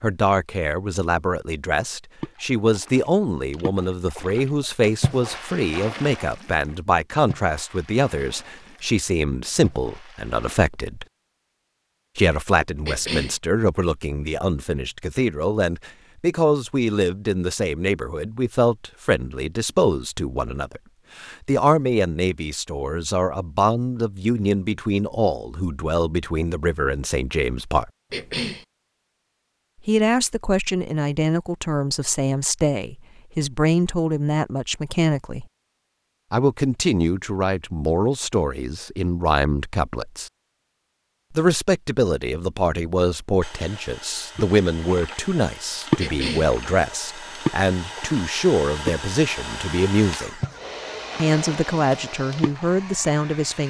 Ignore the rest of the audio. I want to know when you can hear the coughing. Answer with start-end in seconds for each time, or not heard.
12.8-13.4, 28.1-28.6, 46.0-46.5.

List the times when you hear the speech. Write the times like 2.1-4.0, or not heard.
0.0-11.1, 12.2-27.9, 29.9-35.5, 36.3-40.3, 41.3-50.4, 51.1-53.6.